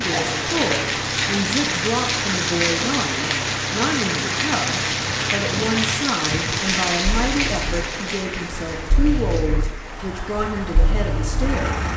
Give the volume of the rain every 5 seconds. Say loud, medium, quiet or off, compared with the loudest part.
loud, loud, quiet.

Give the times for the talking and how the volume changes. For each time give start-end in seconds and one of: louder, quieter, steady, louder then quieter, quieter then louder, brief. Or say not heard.
0.0-11.8 steady.